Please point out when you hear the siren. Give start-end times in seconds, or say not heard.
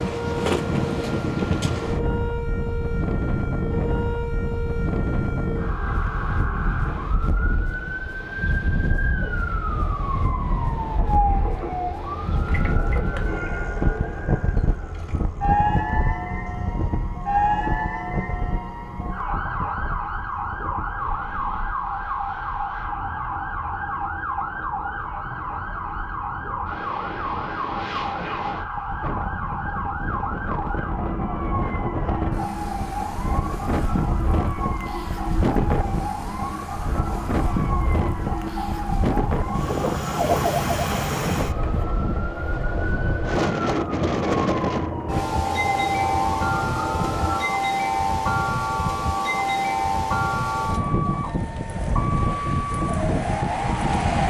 0.0-54.2.